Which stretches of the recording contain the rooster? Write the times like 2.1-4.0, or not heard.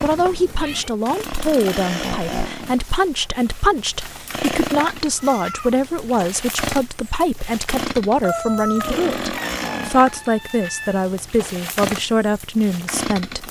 8.2-9.2.